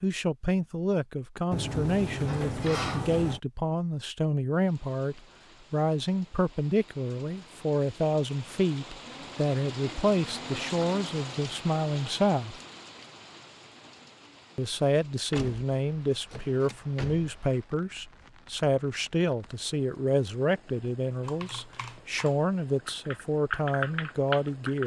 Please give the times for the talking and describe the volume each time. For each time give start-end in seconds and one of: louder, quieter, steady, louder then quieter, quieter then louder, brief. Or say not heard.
0.0-12.6 steady
14.6-24.8 steady.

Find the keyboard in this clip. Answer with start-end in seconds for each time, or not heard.
21.2-24.8.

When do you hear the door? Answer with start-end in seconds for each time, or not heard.
1.5-3.4, 15.3-17.4.